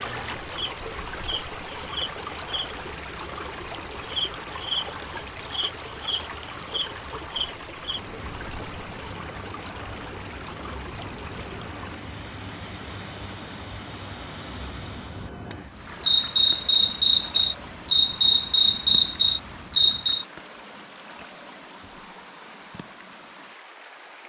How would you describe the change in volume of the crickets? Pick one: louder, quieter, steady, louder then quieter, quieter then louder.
louder.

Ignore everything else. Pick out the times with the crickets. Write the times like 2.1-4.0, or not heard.
0.0-20.2.